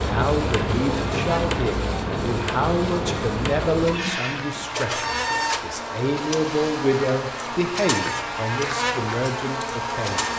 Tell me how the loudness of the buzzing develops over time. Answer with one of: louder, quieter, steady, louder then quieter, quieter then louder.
louder.